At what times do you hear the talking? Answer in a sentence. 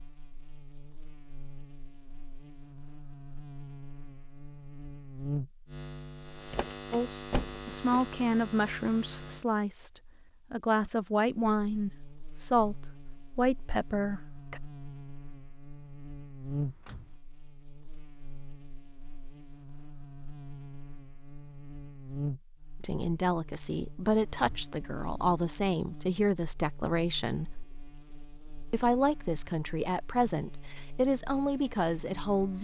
You can hear the talking from 6.9 to 12.8 s, from 13.3 to 14.6 s, from 22.8 to 27.6 s and from 28.7 to 32.6 s.